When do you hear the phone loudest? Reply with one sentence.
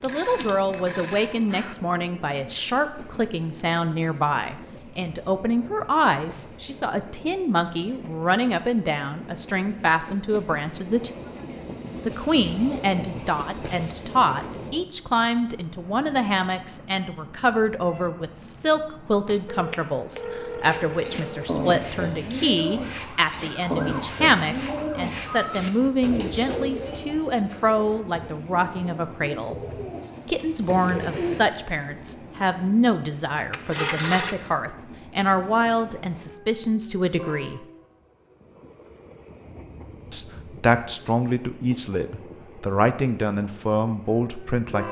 The volume of the phone peaks at 34 seconds.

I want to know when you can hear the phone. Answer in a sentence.
You can hear the phone from 0.0 to 1.8 s, from 19.4 to 21.5 s and from 33.5 to 34.5 s.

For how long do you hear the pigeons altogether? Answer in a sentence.
You can hear the pigeons for 11 seconds altogether.